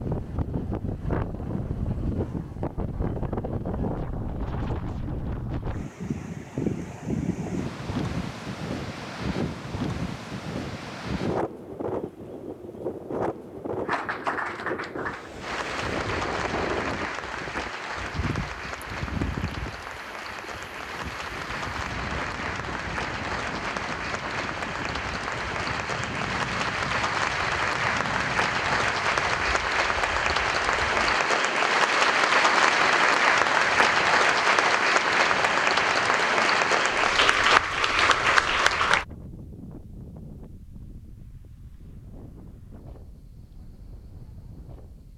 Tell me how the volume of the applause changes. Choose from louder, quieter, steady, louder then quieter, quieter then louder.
louder.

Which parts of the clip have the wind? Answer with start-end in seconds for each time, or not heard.
0.0-45.1.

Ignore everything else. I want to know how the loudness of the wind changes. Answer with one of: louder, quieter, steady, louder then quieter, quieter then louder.
quieter.